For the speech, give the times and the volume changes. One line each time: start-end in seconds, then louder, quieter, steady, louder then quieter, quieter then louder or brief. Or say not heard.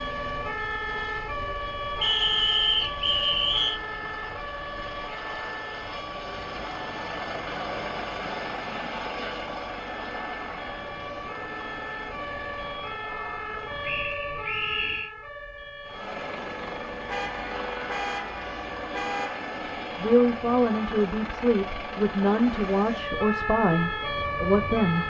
19.9-25.0 steady.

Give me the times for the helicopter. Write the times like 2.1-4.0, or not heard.
0.0-14.1, 15.8-25.0.